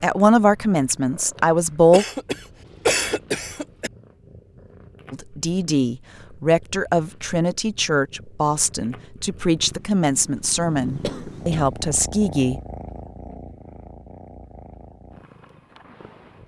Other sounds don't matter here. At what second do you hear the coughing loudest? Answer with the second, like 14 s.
3 s.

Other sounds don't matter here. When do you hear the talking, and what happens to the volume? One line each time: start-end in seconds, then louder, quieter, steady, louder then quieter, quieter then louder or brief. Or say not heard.
0.0-2.0 brief
5.1-12.6 steady.